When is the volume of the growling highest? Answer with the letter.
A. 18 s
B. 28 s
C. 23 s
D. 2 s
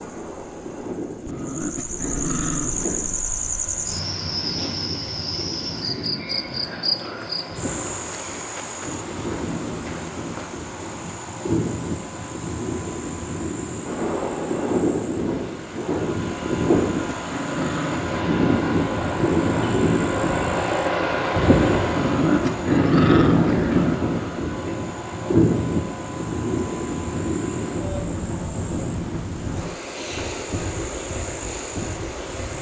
C.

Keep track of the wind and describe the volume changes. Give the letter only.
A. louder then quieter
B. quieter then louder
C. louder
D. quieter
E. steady
A.